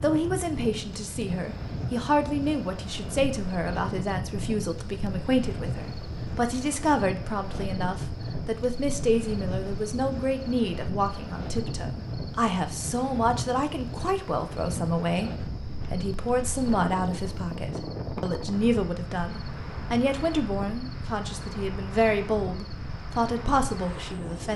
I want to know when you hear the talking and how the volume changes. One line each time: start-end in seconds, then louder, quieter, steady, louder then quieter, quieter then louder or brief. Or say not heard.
0.0-15.3 steady
15.9-24.5 steady.